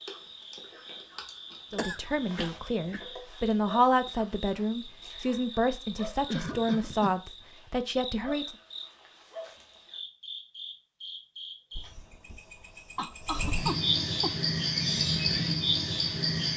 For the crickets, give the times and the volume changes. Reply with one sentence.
The crickets can be heard from 0.0 to 16.5 s, getting louder.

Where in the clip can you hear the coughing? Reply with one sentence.
You can hear the coughing from 1.8 to 3.0 s, from 6.2 to 7.2 s and from 12.9 to 14.3 s.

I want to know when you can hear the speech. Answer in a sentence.
You can hear the speech from 1.7 to 8.4 s.